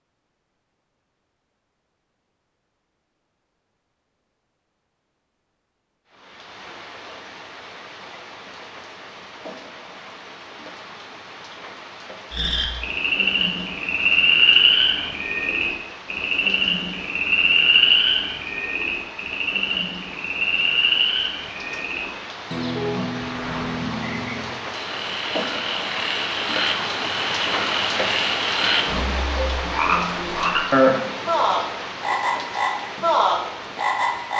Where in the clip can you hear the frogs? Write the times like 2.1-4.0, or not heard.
12.3-34.3.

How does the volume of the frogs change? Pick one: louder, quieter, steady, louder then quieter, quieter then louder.
quieter then louder.